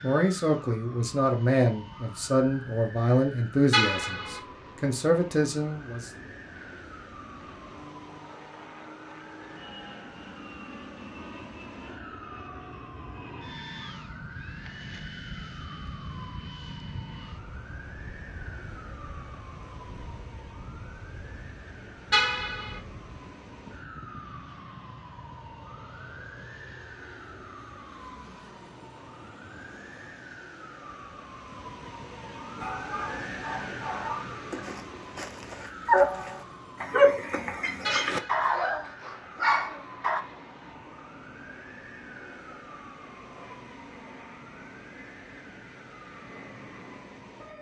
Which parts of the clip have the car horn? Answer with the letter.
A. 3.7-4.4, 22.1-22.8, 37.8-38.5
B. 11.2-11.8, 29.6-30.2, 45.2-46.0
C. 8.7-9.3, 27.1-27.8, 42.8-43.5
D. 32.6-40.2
A.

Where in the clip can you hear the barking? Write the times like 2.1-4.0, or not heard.
32.6-40.2.